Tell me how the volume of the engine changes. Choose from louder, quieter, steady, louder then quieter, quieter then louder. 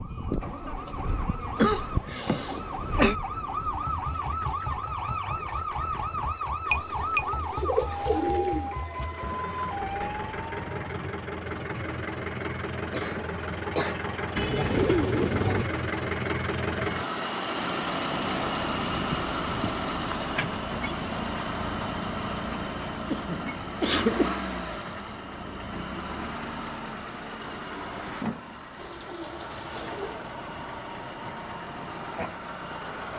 louder then quieter.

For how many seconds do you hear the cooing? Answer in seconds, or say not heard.
5 s.